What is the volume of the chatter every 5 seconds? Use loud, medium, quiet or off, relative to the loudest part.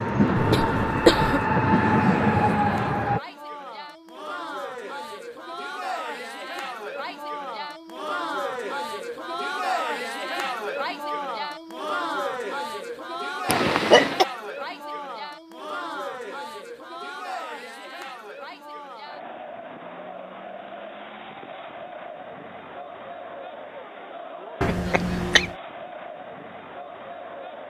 medium, loud, loud, medium, medium, medium.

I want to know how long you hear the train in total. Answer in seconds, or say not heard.
3 s.